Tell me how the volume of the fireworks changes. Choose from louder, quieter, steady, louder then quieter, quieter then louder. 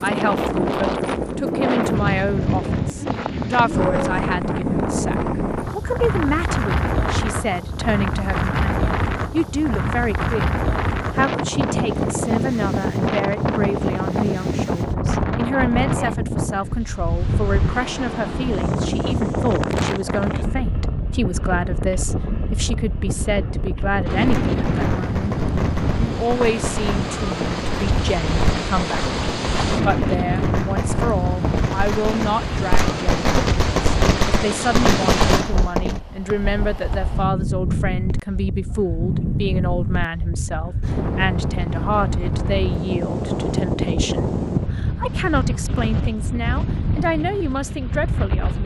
louder.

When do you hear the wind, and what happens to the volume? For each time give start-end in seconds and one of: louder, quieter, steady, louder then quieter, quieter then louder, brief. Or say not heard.
0.0-48.6 steady.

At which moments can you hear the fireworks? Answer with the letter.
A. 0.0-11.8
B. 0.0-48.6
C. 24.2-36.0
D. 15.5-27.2
C.